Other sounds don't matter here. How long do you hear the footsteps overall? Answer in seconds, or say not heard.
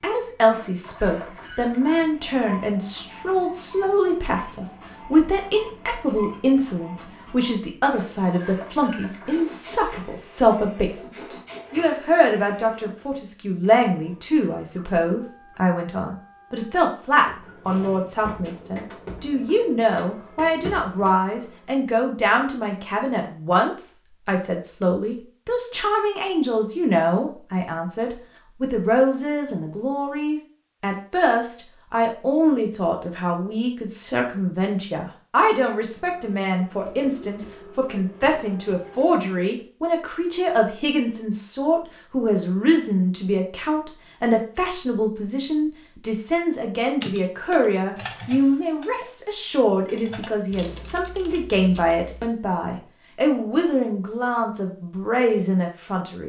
not heard.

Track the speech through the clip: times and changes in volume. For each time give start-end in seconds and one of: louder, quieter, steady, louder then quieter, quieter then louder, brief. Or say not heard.
0.0-56.2 steady.